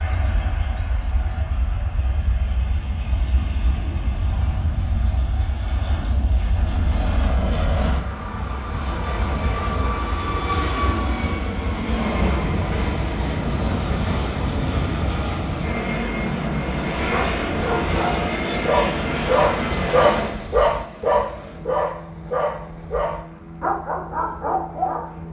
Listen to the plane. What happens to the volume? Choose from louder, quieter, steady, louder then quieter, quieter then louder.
louder then quieter.